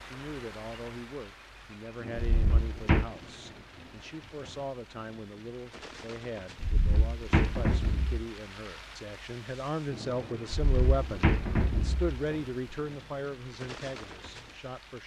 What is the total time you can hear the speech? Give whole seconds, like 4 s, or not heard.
15 s.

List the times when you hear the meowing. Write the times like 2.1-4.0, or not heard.
not heard.